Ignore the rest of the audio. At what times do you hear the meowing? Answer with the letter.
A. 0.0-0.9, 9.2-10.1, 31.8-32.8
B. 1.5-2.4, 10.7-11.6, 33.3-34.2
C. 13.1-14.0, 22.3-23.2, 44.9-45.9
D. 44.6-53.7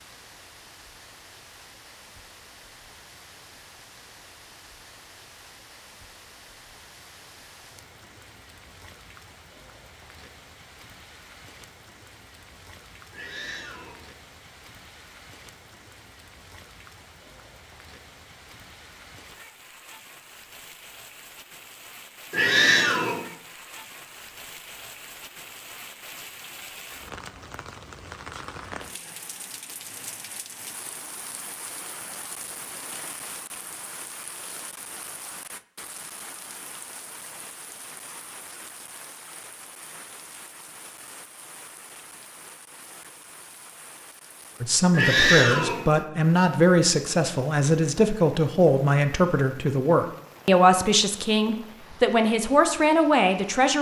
C.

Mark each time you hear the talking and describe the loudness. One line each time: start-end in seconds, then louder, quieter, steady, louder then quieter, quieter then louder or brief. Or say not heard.
44.6-53.7 steady.